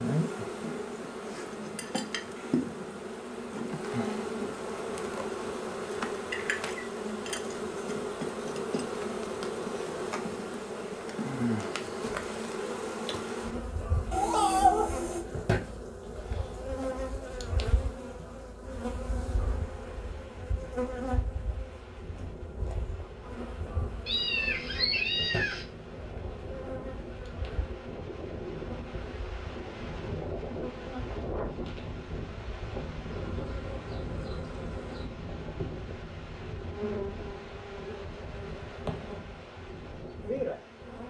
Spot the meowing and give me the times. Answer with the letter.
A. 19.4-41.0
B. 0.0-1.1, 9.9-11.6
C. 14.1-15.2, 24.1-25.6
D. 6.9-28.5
C.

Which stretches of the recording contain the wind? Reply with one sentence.
The wind can be heard from 19.4 to 41.0 s.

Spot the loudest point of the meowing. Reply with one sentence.
The loudest moment of the meowing is at 15 seconds.